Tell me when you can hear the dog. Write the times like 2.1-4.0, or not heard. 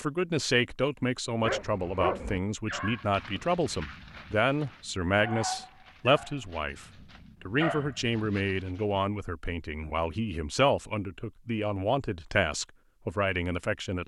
1.4-9.0.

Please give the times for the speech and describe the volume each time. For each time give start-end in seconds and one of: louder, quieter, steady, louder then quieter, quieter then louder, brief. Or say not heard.
0.0-14.0 steady.